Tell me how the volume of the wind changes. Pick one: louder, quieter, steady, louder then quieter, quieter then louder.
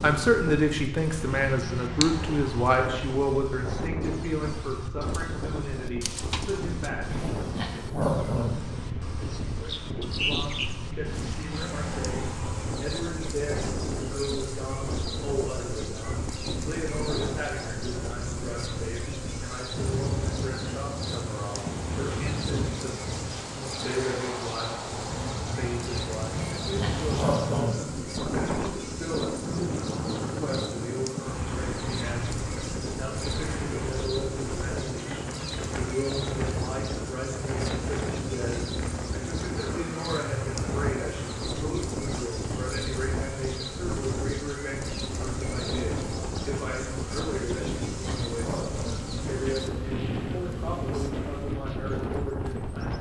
steady.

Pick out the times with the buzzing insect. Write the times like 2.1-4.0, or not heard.
0.0-52.9.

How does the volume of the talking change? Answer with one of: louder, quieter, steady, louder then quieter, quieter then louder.
quieter.